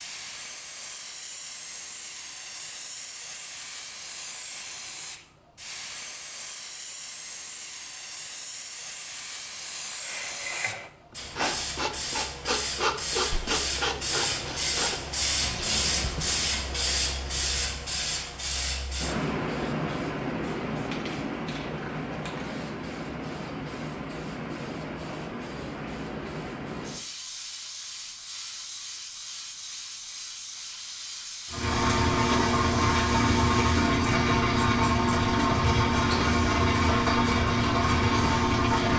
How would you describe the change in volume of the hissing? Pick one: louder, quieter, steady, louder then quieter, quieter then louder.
louder then quieter.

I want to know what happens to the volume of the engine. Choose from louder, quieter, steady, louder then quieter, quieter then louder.
steady.